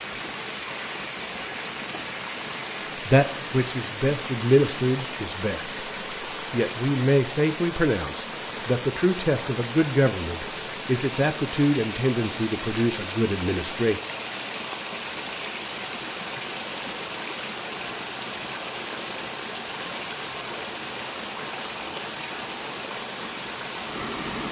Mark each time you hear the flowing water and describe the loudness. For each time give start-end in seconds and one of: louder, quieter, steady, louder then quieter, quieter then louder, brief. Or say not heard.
0.0-24.4 steady.